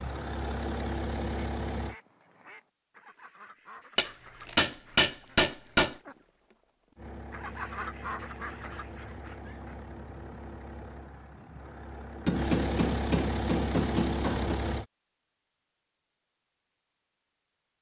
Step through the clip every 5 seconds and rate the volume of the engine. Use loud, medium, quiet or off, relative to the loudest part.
loud, medium, loud, off.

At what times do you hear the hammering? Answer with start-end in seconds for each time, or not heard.
4.0-6.0, 12.2-14.6.